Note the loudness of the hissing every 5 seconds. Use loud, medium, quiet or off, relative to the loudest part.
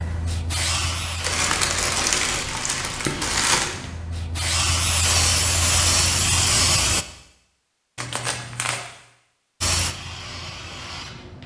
medium, loud, quiet.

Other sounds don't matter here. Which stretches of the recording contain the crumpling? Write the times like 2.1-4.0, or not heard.
1.2-3.8, 8.0-8.9.